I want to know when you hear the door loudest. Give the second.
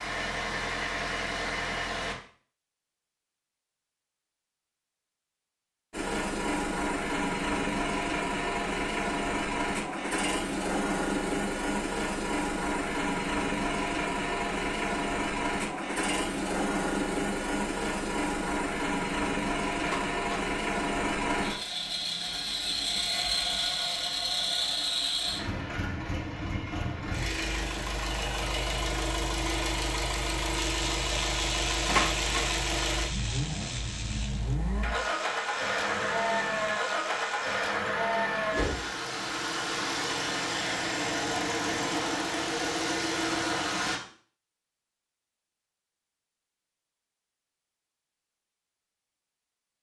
32 s.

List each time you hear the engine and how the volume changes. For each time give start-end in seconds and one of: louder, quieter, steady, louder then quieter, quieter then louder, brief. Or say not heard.
0.0-2.1 brief
5.9-44.0 steady.